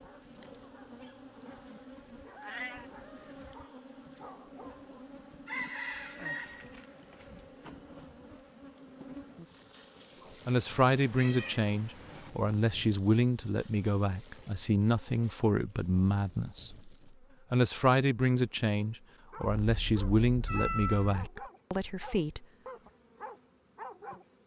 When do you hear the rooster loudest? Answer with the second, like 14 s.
6 s.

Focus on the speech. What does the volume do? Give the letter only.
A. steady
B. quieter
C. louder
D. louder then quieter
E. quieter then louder
A.